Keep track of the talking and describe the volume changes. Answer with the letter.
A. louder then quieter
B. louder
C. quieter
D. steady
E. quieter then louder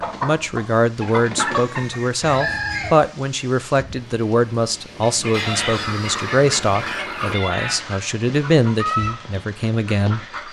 D.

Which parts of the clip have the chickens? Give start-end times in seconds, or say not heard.
0.0-2.9, 5.0-10.4.